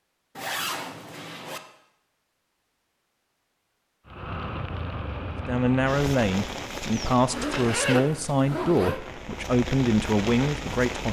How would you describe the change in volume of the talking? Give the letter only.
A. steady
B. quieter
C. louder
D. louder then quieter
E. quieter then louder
A.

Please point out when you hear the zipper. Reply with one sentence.
You can hear the zipper from 0.3 to 1.6 s and from 7.3 to 9.0 s.